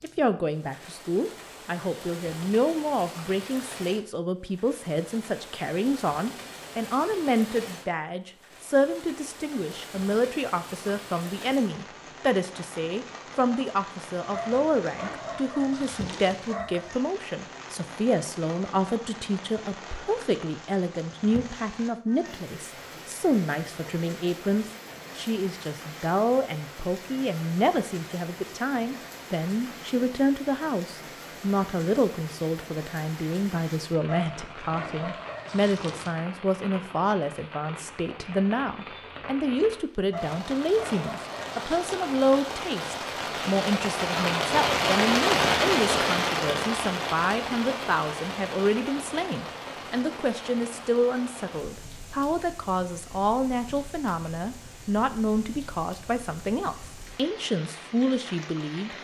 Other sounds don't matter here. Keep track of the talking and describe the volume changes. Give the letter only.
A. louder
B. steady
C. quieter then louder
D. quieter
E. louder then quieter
B.